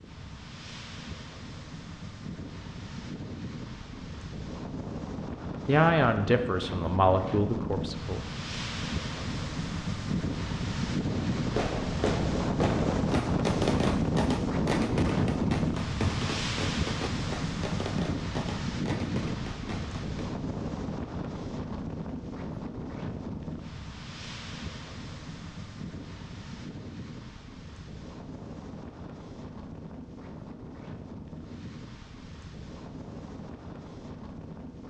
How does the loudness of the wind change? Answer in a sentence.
The volume of the wind goes up, then down.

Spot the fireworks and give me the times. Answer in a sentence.
The fireworks can be heard from 11.1 to 20.2 s.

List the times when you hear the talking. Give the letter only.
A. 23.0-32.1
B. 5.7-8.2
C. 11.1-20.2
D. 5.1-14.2
B.